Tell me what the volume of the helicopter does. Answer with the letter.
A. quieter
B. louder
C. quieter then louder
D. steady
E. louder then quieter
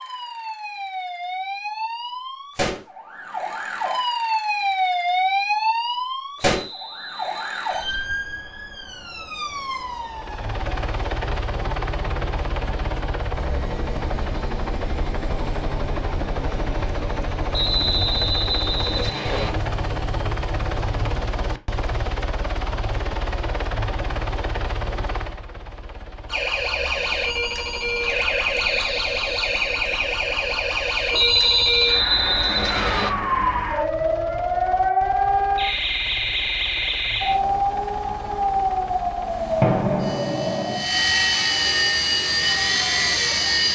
C.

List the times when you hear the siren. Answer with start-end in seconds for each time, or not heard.
0.0-21.2, 26.2-43.5.